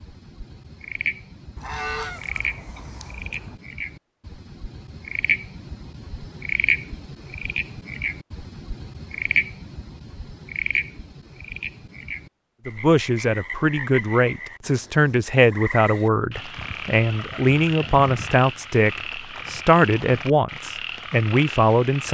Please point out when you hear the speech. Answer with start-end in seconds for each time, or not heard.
12.7-22.0.